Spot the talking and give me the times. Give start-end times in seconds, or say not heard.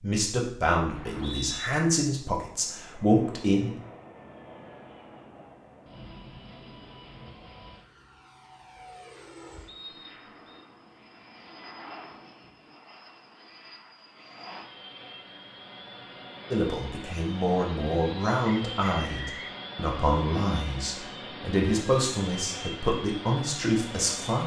0.0-3.7, 16.5-24.4.